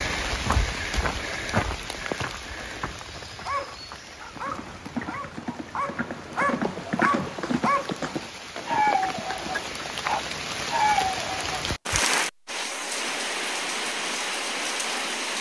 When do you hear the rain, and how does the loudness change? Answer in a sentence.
You can hear the rain from 0.0 to 15.3 s, getting quieter then louder.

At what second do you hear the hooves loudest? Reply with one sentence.
The volume of the hooves peaks at 7 seconds.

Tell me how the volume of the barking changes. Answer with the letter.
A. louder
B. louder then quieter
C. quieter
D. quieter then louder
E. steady
A.